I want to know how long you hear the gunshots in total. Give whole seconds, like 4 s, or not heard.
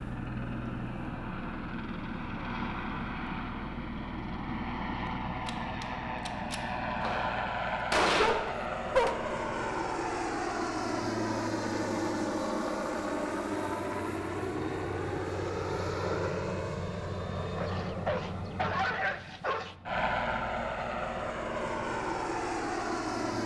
4 s.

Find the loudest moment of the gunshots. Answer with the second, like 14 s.
8 s.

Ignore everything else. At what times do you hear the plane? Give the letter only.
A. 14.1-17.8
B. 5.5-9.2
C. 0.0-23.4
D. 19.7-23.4
C.